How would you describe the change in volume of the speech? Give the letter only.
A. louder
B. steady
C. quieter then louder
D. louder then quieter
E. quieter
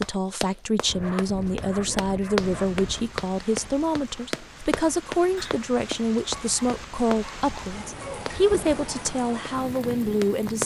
B.